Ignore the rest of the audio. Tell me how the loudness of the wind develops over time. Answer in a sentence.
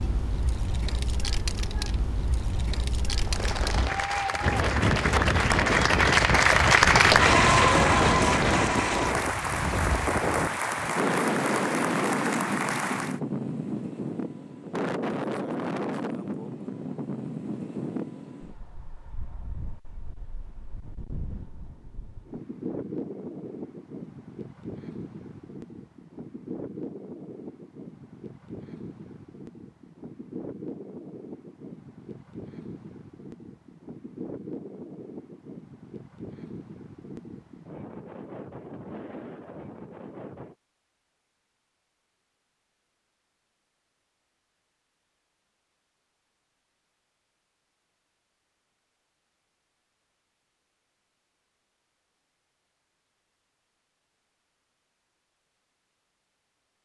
The volume of the wind goes down.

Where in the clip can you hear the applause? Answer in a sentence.
The applause can be heard from 3.2 to 13.2 s.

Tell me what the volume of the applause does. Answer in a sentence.
The loudness of the applause goes up, then down.